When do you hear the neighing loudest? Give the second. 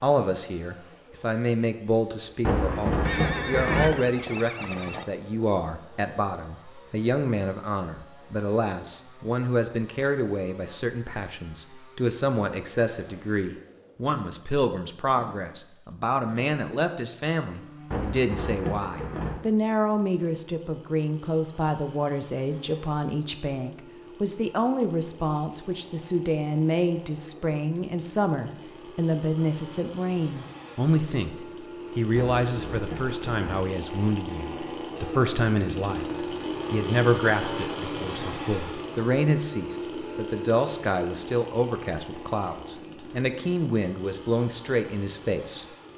4 s.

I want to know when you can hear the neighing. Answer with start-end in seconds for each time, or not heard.
3.0-5.0.